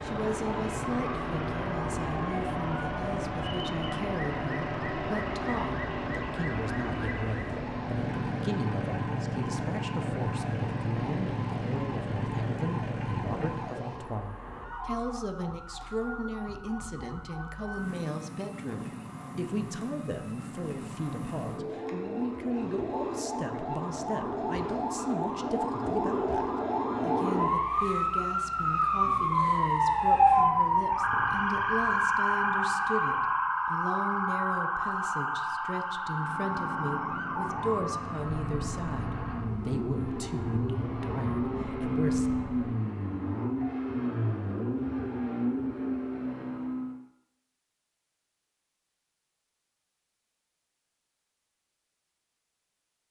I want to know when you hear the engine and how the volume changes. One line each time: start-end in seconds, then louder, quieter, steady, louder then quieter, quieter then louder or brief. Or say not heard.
0.0-13.9 steady
36.0-47.0 louder.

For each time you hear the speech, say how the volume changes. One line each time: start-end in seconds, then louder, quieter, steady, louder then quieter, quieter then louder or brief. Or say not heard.
0.0-42.3 steady.